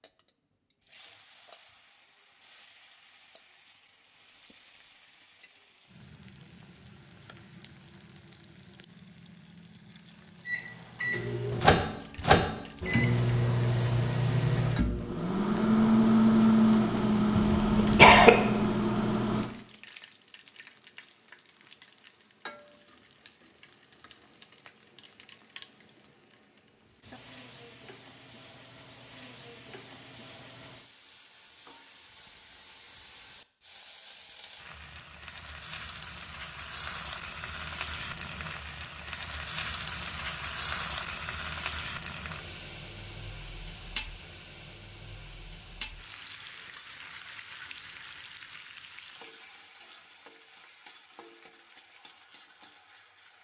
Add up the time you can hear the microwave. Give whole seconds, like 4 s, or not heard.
9 s.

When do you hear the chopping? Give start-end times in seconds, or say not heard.
not heard.